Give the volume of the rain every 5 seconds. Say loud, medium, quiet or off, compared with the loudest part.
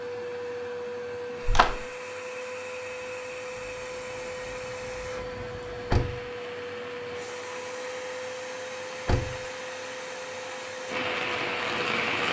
quiet, quiet, loud.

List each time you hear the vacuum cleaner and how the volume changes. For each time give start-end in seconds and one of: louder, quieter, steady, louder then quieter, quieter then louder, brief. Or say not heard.
0.0-12.2 steady.